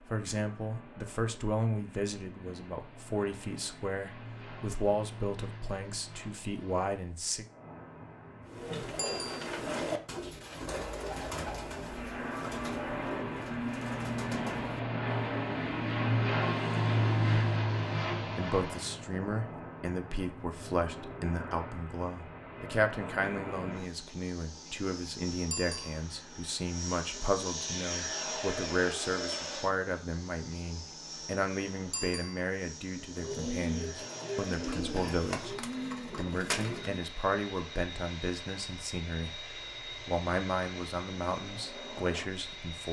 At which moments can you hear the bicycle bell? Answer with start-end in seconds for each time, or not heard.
8.9-9.3, 25.5-26.0, 31.9-32.4.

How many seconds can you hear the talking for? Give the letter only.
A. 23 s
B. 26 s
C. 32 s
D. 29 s
C.